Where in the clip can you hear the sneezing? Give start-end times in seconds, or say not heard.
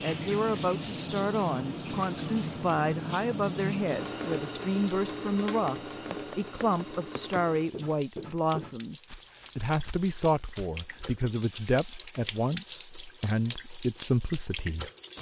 not heard.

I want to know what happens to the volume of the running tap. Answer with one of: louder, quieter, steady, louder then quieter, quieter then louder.
quieter then louder.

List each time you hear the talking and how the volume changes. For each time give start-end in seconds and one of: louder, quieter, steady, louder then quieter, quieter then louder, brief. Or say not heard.
0.0-14.9 steady.